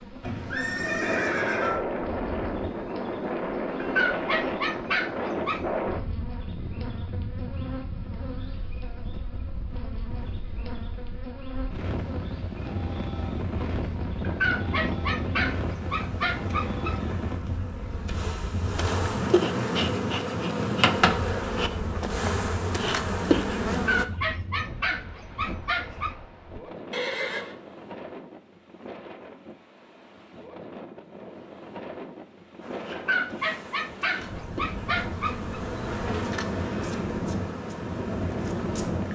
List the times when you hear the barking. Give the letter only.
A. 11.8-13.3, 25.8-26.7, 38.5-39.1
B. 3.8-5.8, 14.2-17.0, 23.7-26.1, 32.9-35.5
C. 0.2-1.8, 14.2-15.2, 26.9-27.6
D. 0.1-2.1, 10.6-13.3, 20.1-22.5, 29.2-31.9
B.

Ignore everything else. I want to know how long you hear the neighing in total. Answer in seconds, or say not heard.
3 s.